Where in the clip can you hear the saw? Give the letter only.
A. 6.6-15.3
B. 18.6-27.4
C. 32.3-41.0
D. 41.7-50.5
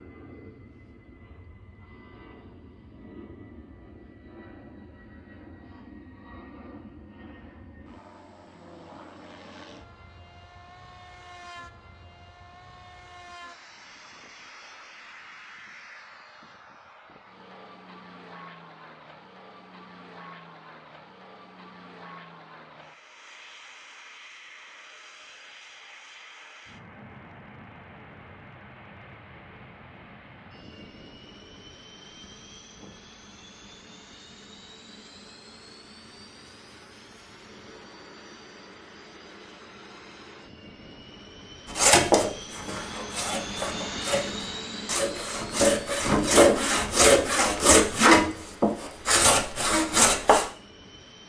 D.